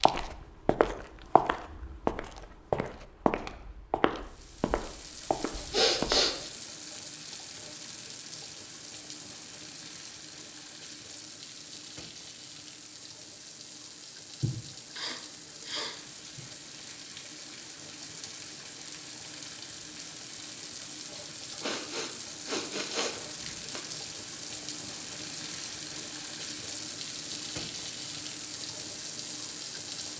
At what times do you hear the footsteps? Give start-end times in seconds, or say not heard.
0.0-6.2.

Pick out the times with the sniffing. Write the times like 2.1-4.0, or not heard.
5.7-6.5, 14.4-16.4, 21.6-23.8.